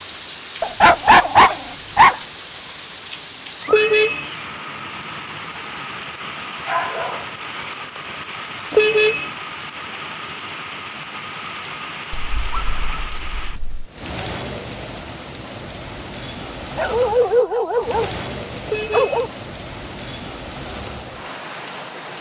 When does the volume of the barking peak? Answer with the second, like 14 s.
1 s.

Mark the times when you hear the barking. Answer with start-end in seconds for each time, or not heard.
0.6-2.2, 6.2-8.2, 12.1-13.9, 16.8-18.1, 18.9-19.3.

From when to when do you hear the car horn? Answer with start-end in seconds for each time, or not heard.
3.6-4.3, 8.7-9.3, 18.6-19.2.